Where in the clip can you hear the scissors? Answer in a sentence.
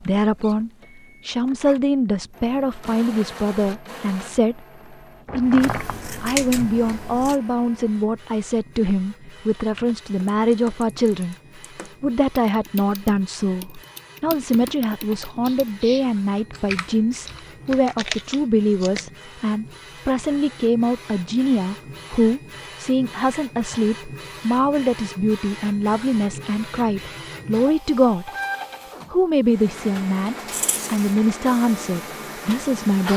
The scissors can be heard from 5.7 to 7.3 s, from 17.9 to 19.1 s and from 30.5 to 31.1 s.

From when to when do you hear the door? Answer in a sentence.
You can hear the door from 5.2 to 6.2 s.